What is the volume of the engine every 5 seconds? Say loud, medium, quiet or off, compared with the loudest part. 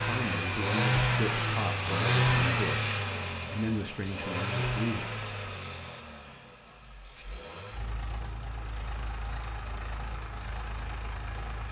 loud, quiet, quiet.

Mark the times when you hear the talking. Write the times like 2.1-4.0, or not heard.
0.1-5.0.